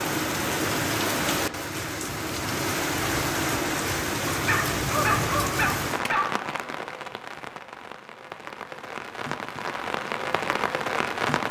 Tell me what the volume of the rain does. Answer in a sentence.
The loudness of the rain goes down, then up.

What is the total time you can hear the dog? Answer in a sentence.
The dog can be heard for 2 seconds in total.